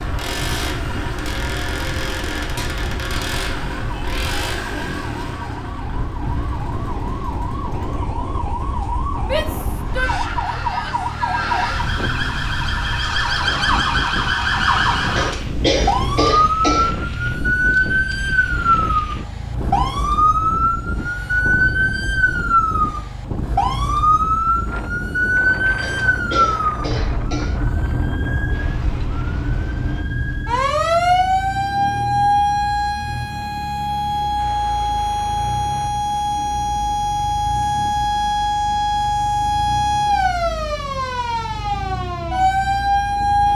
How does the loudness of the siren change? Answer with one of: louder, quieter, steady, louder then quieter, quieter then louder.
louder.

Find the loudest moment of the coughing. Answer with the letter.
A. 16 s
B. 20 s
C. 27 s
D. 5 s
A.